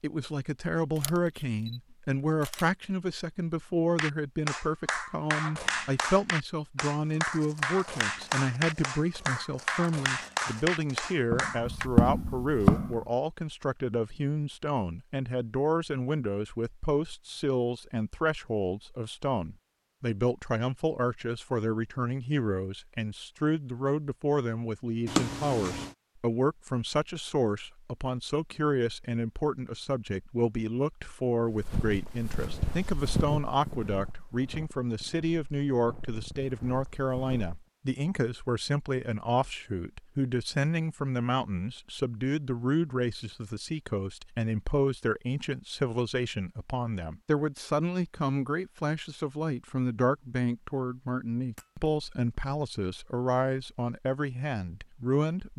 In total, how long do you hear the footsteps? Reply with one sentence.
You can hear the footsteps for 12 seconds altogether.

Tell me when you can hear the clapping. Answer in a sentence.
You can hear the clapping from 4.0 to 11.9 s.